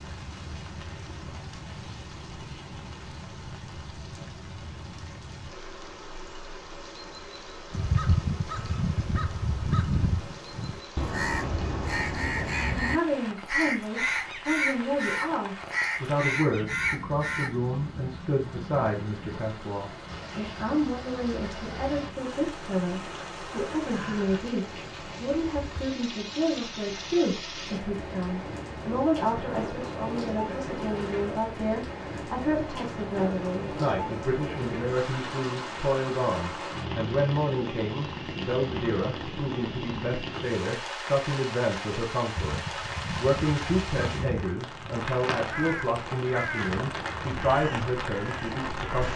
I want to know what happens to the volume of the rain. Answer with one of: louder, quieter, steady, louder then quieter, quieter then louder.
louder.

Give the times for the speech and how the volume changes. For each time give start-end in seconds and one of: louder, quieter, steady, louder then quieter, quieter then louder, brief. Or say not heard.
12.6-49.1 steady.